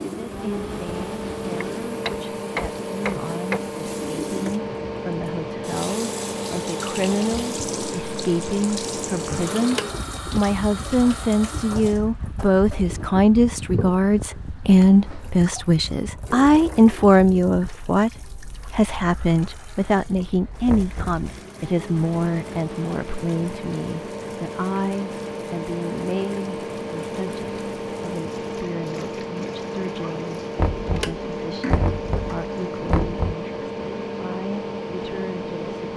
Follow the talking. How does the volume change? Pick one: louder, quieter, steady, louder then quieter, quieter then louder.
louder then quieter.